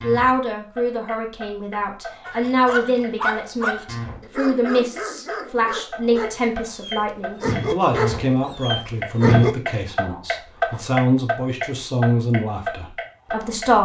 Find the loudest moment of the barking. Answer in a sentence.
The volume of the barking peaks at 9 seconds.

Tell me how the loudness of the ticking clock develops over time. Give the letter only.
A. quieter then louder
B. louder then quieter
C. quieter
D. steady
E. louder
E.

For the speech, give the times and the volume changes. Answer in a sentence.
You can hear the speech from 0.0 to 13.8 s, at a steady volume.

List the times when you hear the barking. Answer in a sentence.
You can hear the barking from 2.2 to 9.6 s.